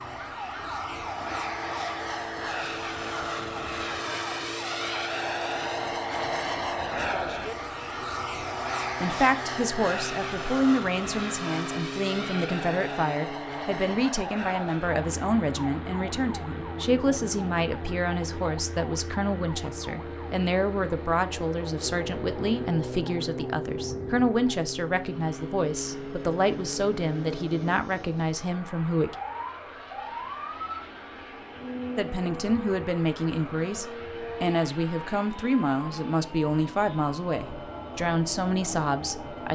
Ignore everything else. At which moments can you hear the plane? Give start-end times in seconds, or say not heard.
0.0-39.5.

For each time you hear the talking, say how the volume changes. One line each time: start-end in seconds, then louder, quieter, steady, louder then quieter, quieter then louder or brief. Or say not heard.
9.0-29.1 steady
31.9-39.5 steady.